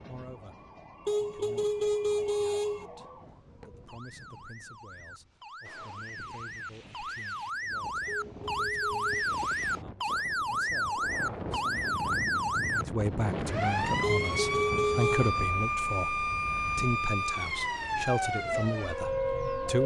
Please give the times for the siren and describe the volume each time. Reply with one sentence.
You can hear the siren from 0.0 to 19.8 s, getting louder.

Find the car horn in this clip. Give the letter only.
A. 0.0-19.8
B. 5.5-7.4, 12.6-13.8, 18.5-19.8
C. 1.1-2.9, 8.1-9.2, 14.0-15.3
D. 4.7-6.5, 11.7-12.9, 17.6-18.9
C.